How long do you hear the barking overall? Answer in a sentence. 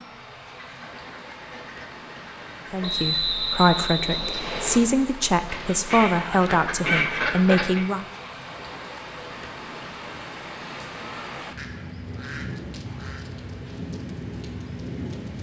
The barking can't be heard in this clip.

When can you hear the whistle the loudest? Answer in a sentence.
The loudest moment of the whistle is at 3 seconds.